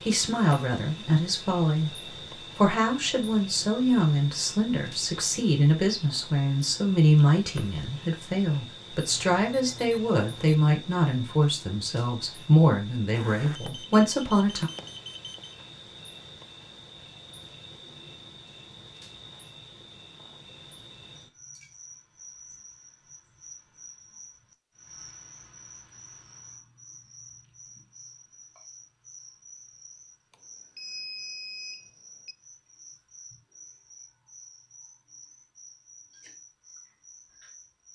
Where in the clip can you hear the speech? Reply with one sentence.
The speech can be heard from 0.0 to 14.7 s.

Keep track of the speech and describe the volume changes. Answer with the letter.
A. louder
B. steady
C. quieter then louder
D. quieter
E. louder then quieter
B.